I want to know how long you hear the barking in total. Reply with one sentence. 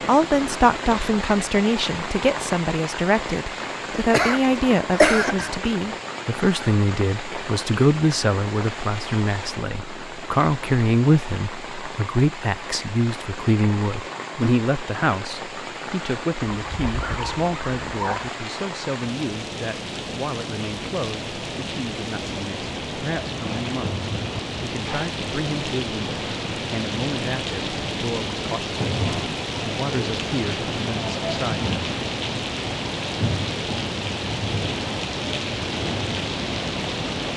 The barking can be heard for 2 seconds in total.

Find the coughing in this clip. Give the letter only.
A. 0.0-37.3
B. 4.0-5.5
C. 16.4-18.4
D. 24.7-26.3
B.